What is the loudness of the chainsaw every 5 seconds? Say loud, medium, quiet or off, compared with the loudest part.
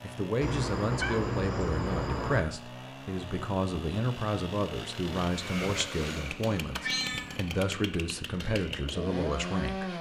medium, loud.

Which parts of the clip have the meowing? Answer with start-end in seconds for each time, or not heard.
0.4-2.5, 6.7-7.5.